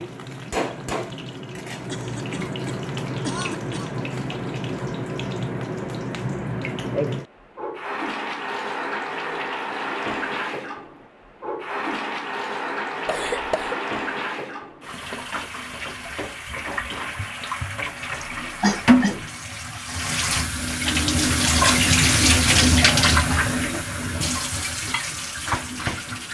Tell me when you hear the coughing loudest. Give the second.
19 s.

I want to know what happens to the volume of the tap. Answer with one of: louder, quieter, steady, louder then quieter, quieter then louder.
louder.